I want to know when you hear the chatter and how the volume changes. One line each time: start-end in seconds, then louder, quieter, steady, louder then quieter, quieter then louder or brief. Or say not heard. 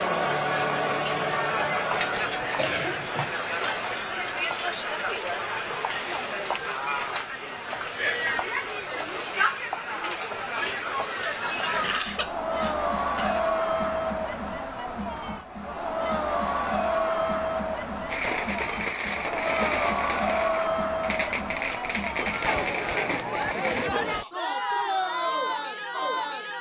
0.0-26.5 steady.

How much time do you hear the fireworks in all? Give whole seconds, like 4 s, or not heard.
6 s.